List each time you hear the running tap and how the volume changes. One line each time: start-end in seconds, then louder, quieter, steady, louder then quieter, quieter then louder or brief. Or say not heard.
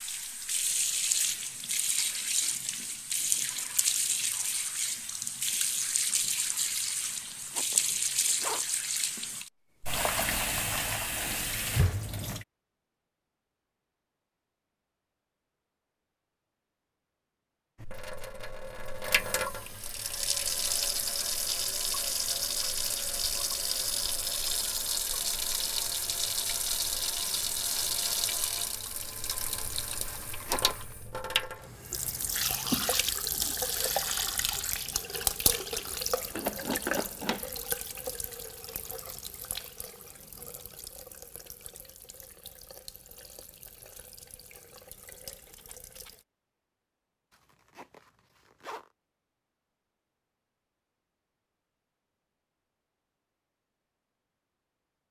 0.0-12.4 steady
17.8-46.2 quieter.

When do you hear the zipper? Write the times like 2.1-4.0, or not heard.
7.1-8.7, 30.1-30.9, 47.3-48.9.